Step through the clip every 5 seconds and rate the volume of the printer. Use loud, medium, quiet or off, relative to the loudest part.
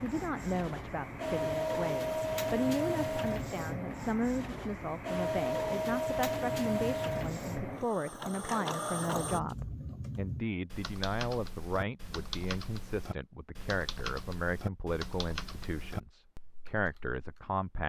loud, loud, off, off.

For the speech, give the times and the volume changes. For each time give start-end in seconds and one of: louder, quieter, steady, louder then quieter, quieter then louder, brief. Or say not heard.
0.0-17.8 steady.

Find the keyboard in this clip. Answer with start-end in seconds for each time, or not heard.
9.2-17.6.